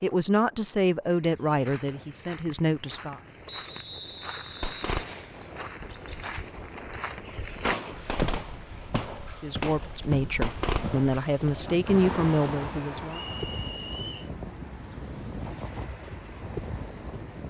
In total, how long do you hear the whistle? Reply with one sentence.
You can hear the whistle for 3 seconds altogether.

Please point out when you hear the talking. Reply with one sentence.
You can hear the talking from 0.0 to 3.2 s and from 9.4 to 13.2 s.